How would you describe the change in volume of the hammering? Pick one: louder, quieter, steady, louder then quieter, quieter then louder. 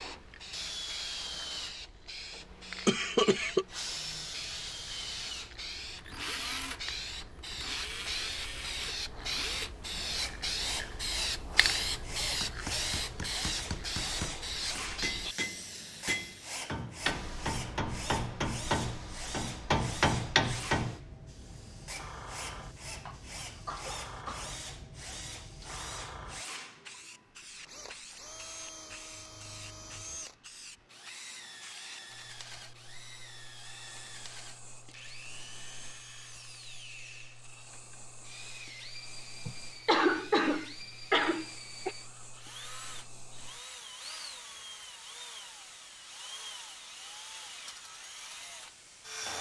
louder.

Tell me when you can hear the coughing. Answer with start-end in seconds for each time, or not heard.
2.9-3.6, 23.1-24.6, 39.5-42.0.